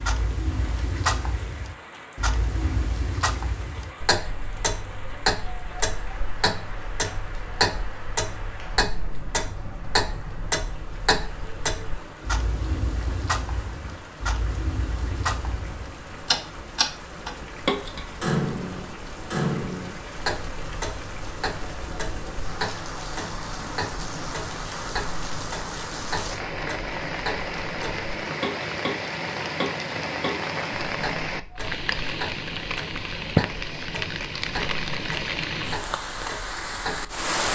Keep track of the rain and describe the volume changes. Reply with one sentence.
The loudness of the rain goes up.